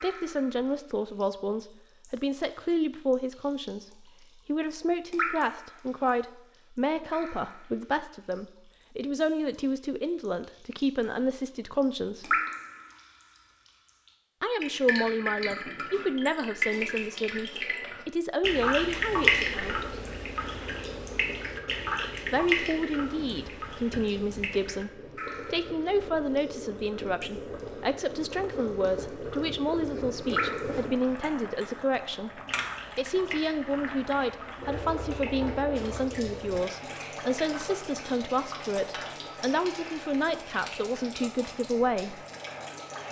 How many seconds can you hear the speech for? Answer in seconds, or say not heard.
37 s.